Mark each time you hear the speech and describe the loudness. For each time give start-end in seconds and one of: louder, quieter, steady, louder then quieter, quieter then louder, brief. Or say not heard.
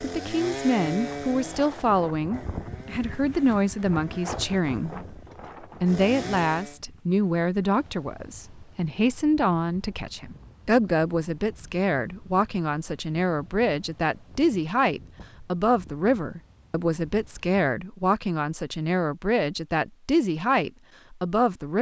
0.0-21.7 steady.